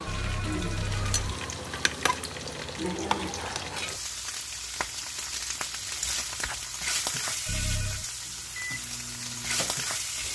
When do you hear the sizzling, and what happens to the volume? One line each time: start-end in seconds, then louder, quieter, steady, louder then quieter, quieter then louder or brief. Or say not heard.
0.0-10.3 steady.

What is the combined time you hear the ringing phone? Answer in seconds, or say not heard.
2 s.